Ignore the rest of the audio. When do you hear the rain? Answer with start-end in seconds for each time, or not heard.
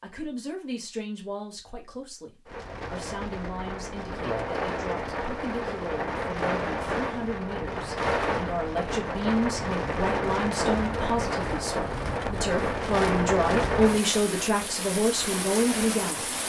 2.5-16.4.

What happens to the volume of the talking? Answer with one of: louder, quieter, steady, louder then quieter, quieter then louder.
louder.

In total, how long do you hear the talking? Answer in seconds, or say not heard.
16 s.